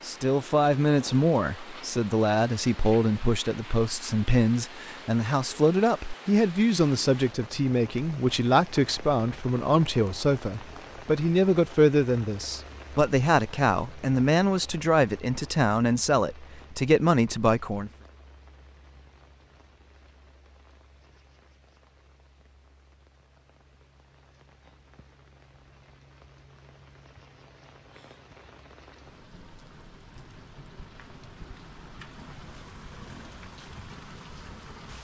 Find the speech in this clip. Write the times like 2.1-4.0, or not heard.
0.0-17.9.